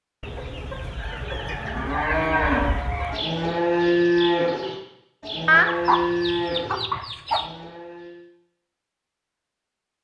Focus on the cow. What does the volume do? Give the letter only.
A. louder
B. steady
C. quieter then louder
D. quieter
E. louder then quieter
D.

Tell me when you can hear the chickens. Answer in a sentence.
The chickens can be heard from 0.2 to 3.2 s and from 5.5 to 7.5 s.